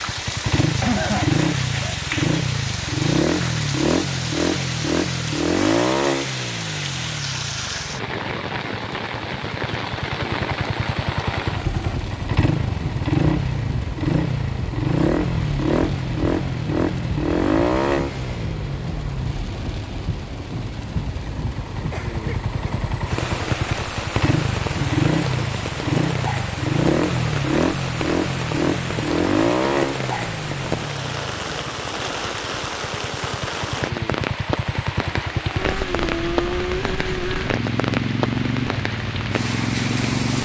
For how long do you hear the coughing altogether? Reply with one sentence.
The coughing can be heard for 2 seconds in total.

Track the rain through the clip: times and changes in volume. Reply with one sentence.
You can hear the rain from 0.0 to 40.4 s, at a steady volume.